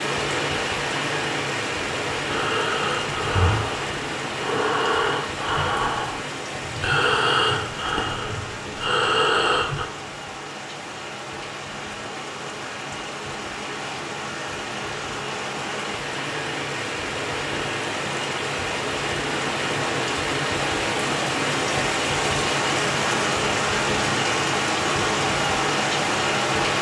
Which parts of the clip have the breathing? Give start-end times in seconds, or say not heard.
2.2-9.9.